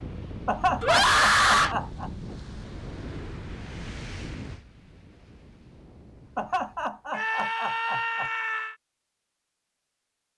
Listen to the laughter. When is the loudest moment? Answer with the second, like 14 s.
1 s.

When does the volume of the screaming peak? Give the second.
1 s.